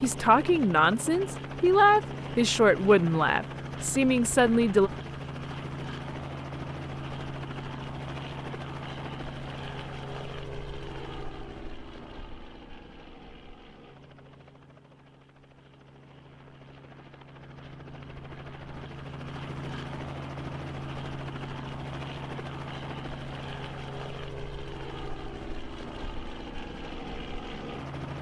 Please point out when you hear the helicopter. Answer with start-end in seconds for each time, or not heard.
0.0-28.1.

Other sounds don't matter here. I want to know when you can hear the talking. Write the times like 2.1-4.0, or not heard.
0.0-4.9.